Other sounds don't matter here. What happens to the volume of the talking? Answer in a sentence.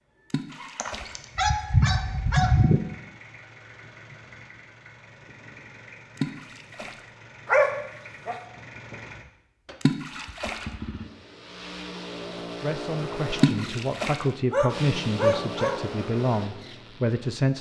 The volume of the talking goes up.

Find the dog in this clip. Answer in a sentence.
The dog can be heard from 0.8 to 2.8 s, from 7.5 to 8.3 s and from 14.5 to 15.8 s.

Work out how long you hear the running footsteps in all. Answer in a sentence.
The running footsteps can't be heard in this clip.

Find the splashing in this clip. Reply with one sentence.
You can hear the splashing from 0.3 to 1.1 s, from 6.2 to 7.0 s, from 9.8 to 10.7 s and from 13.3 to 14.2 s.